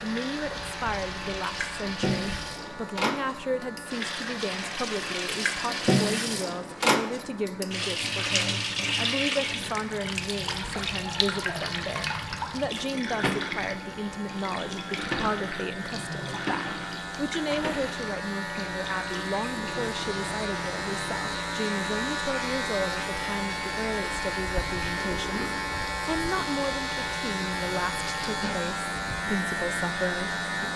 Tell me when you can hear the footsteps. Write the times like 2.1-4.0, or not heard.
not heard.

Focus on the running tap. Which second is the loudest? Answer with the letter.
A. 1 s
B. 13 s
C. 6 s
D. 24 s
C.